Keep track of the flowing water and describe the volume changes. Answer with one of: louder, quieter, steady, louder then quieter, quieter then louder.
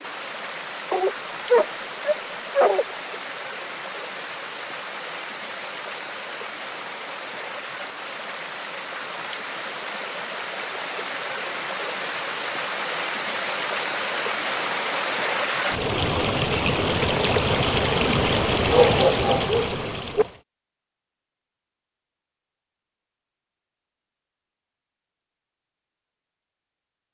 louder.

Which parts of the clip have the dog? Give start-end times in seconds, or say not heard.
0.9-2.9, 18.6-20.2.